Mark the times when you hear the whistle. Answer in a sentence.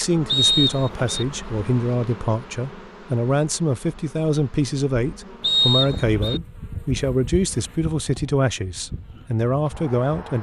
You can hear the whistle from 0.2 to 1.2 s and from 5.4 to 6.4 s.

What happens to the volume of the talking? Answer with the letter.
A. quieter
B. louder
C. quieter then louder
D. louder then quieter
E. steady
E.